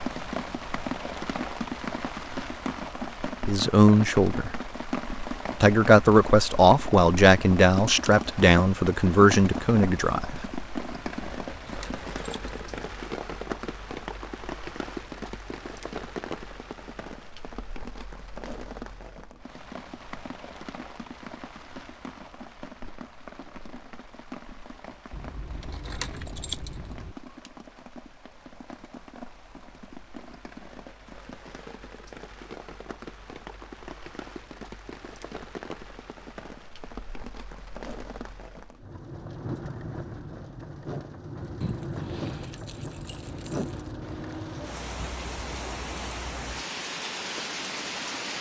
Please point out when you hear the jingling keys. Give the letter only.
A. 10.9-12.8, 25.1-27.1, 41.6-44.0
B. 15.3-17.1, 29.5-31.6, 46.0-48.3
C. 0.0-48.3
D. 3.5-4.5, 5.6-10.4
A.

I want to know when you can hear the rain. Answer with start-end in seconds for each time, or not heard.
0.0-48.3.